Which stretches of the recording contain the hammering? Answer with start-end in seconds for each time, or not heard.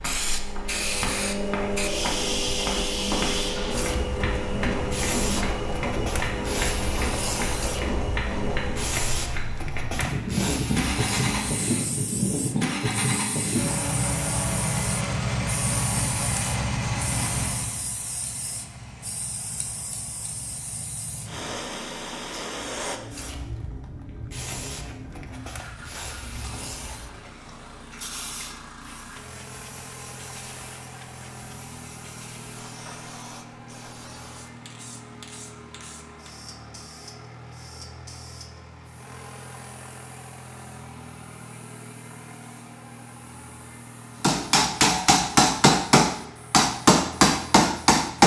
0.0-10.2, 44.2-48.2.